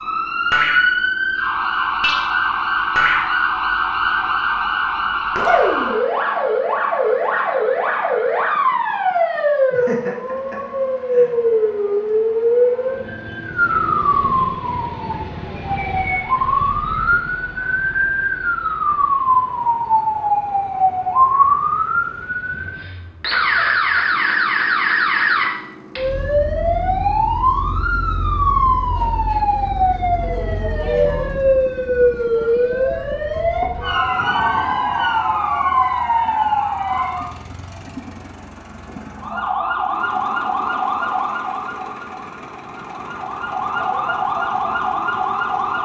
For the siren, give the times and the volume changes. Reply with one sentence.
The siren can be heard from 0.0 to 37.3 s, at a steady volume; and from 39.1 to 45.8 s, getting quieter then louder.